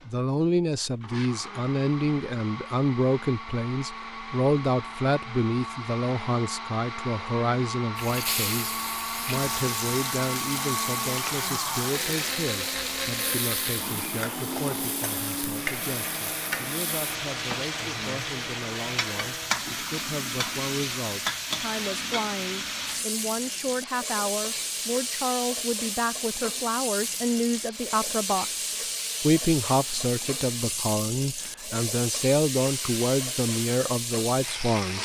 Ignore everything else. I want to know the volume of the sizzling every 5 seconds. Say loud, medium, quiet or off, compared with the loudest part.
off, loud, loud, loud, loud, loud, loud.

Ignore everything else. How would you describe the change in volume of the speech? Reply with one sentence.
The volume of the speech goes down, then up.